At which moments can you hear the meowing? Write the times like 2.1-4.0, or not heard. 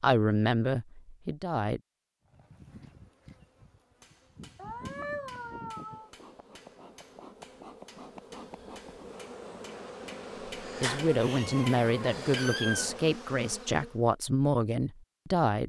4.5-6.1, 10.8-12.9.